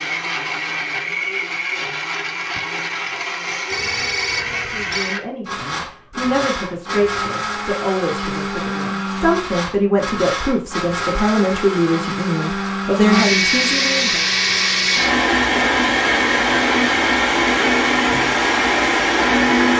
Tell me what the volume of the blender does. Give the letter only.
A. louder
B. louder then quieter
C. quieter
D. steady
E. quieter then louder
A.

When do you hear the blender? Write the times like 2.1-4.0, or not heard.
0.0-19.7.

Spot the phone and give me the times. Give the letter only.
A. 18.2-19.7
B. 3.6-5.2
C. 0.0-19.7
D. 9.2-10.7
B.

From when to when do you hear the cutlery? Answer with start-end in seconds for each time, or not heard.
not heard.